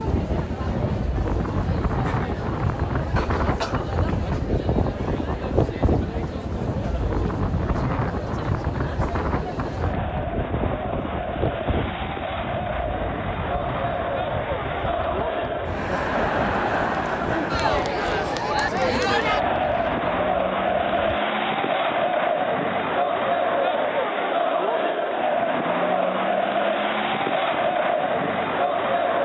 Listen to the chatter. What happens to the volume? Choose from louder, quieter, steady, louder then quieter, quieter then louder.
louder.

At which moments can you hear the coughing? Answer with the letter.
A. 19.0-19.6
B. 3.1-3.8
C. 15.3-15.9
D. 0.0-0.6
B.